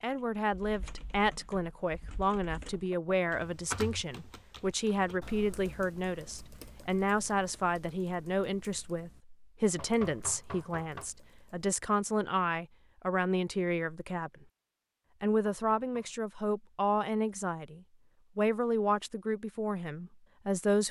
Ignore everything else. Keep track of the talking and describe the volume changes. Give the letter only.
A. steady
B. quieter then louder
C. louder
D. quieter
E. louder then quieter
A.